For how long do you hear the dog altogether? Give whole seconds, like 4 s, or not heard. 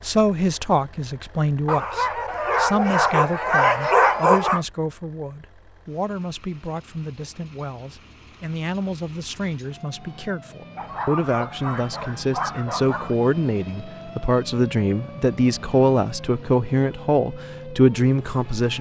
5 s.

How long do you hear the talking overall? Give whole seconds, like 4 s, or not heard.
19 s.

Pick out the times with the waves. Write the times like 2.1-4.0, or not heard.
not heard.